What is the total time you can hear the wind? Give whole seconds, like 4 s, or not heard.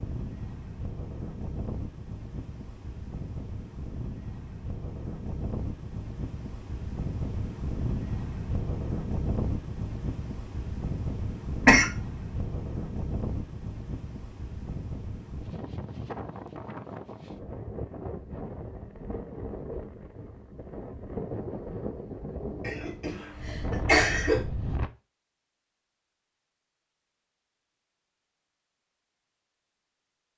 25 s.